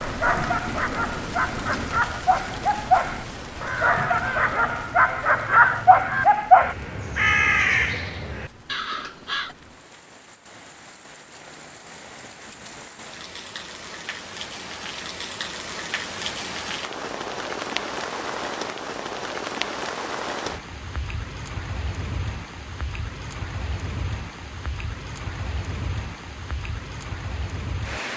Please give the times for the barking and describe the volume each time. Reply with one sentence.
The barking can be heard from 0.0 to 6.8 s, getting louder.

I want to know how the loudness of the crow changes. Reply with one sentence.
The volume of the crow goes up, then down.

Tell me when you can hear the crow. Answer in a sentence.
You can hear the crow from 3.5 to 9.6 s.